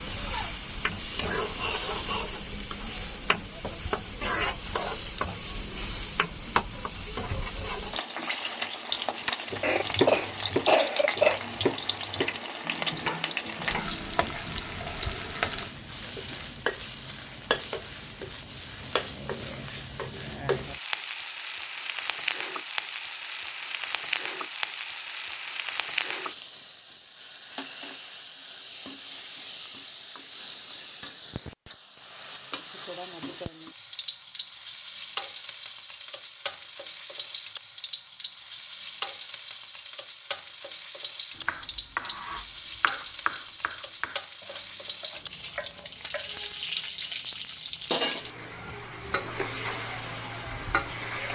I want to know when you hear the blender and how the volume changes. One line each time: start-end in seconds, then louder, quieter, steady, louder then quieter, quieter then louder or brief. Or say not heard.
not heard.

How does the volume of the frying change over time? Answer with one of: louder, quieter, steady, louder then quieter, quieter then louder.
steady.